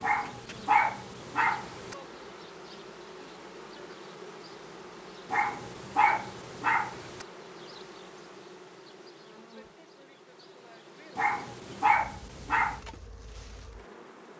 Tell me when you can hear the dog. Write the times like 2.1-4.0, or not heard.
0.0-1.9, 5.3-7.2, 11.2-12.8.